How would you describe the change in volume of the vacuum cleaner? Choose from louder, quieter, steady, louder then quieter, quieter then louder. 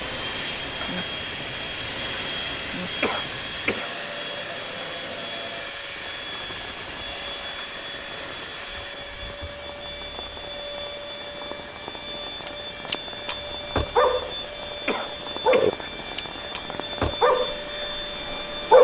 steady.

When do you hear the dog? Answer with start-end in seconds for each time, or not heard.
12.4-14.3, 15.4-17.6, 18.2-18.7.